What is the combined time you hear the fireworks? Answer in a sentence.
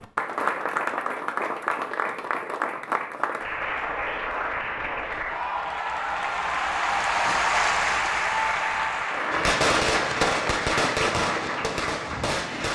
You can hear the fireworks for 3 seconds altogether.